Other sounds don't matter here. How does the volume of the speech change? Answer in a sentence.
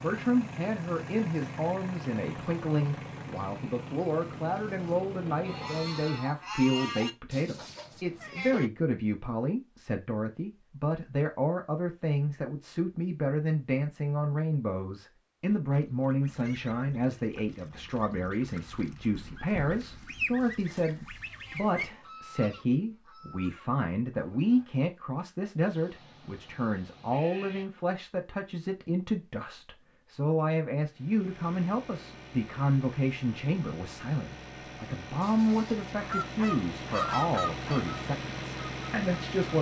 The volume of the speech stays about the same.